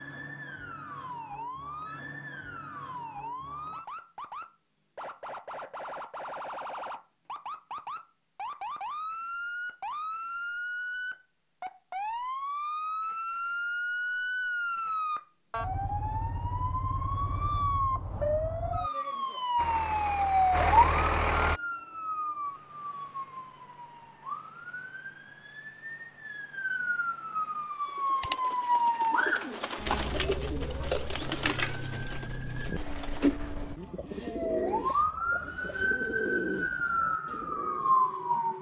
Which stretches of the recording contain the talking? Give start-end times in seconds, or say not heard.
not heard.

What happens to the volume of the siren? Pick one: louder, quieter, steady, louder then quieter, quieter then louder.
louder.